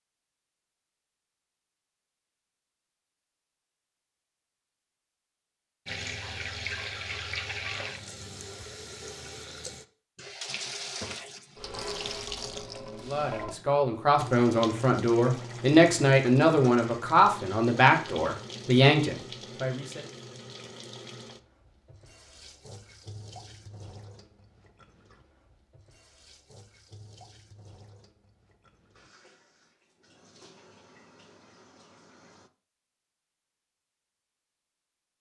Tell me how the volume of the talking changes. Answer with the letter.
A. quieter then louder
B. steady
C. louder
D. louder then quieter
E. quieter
B.